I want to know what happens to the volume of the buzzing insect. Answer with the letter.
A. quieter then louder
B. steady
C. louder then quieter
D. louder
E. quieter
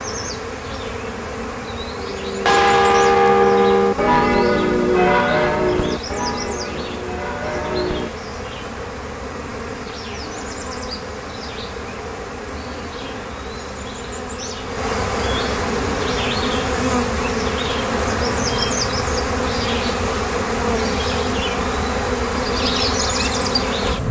D.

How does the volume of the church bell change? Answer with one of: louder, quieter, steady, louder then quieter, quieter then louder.
quieter.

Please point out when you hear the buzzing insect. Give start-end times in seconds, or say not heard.
0.0-24.0.